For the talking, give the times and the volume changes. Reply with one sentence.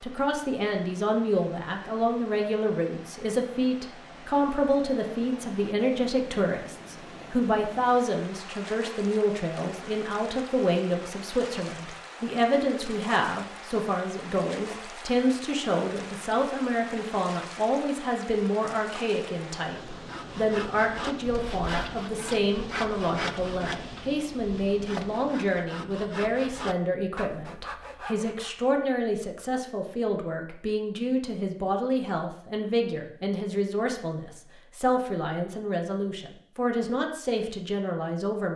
The talking can be heard from 0.0 to 38.5 s, at a steady volume.